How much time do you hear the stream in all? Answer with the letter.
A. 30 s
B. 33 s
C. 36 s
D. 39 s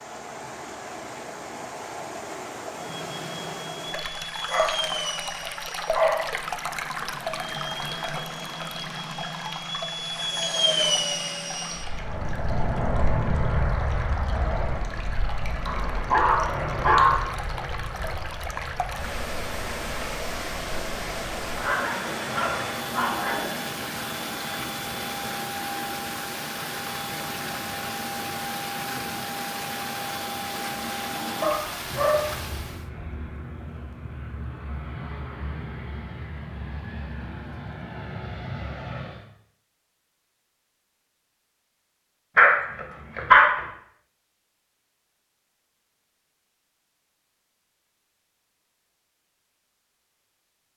B.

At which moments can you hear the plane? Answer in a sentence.
The plane can be heard from 2.7 to 39.2 s.